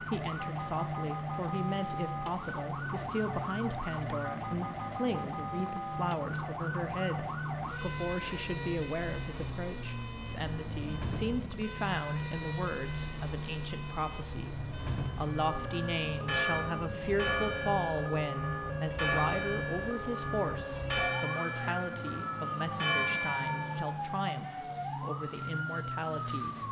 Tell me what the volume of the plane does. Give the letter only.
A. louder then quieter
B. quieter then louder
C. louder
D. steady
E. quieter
D.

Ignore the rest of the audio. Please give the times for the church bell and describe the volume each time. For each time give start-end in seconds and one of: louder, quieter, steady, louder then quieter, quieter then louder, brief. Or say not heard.
15.2-24.0 steady.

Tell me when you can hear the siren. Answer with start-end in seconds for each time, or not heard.
0.0-26.6.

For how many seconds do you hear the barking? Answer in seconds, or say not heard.
not heard.